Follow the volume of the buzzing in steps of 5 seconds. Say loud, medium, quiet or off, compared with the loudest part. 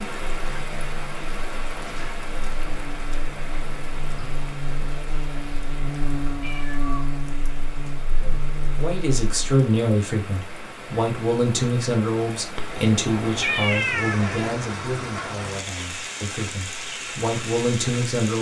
medium, loud, off, off.